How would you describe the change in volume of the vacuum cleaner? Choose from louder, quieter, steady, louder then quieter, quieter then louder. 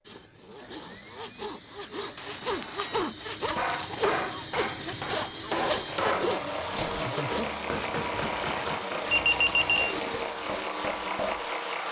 louder.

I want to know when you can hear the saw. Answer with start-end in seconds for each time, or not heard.
0.1-8.8.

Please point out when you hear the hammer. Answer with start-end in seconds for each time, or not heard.
3.5-11.6.